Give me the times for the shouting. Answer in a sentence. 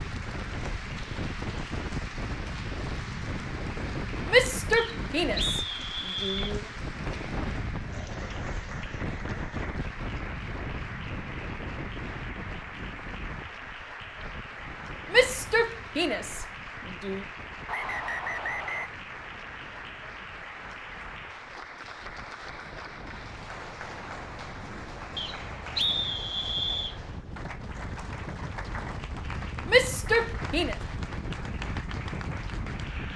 You can hear the shouting from 4.2 to 6.7 s, from 15.1 to 17.2 s and from 29.6 to 30.8 s.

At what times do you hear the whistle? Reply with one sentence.
You can hear the whistle from 4.8 to 6.5 s, from 17.6 to 18.9 s and from 25.1 to 26.9 s.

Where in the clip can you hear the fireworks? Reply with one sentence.
The fireworks can't be heard in this clip.